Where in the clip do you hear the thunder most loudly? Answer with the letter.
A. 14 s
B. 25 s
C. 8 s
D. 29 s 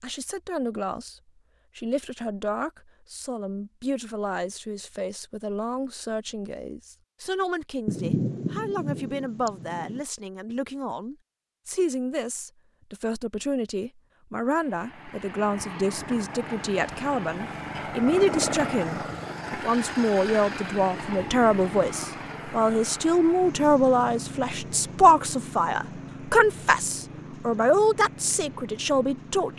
C.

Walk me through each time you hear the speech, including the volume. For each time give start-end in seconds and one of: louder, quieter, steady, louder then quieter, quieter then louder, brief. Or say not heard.
0.0-29.5 louder.